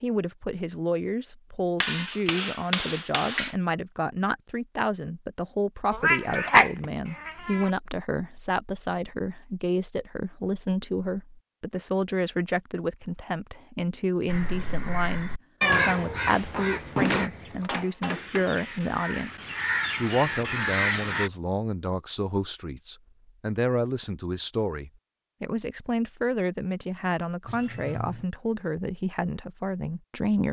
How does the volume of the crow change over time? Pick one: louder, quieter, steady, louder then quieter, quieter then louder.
quieter then louder.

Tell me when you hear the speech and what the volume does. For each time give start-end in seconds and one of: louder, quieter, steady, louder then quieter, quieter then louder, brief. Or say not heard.
0.0-30.4 steady.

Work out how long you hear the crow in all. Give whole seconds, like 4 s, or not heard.
7 s.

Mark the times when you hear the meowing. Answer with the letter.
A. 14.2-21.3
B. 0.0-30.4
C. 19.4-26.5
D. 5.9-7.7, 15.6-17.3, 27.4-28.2
D.